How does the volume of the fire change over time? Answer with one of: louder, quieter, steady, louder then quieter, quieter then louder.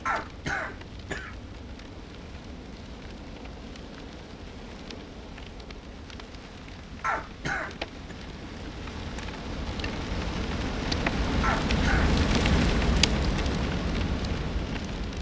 louder.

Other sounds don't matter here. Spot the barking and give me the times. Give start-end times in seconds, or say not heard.
not heard.